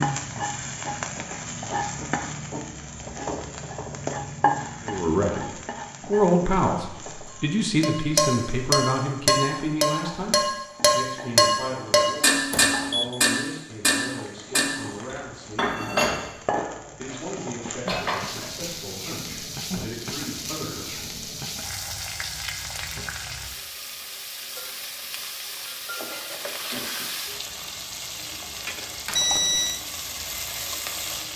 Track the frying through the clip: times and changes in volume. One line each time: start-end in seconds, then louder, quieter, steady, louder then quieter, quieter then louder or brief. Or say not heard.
0.0-31.3 quieter then louder.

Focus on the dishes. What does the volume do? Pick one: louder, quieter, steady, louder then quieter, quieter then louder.
quieter.